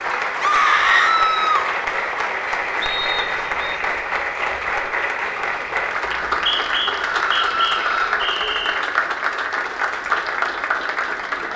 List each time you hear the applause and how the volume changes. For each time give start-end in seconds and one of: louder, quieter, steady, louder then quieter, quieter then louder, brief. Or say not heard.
0.0-11.5 steady.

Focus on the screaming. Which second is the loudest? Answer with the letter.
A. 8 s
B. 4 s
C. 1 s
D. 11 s
C.